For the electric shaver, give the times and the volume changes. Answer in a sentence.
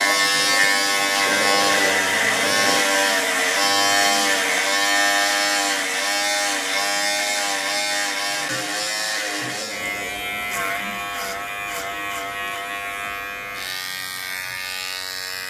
You can hear the electric shaver from 0.0 to 15.4 s, getting quieter.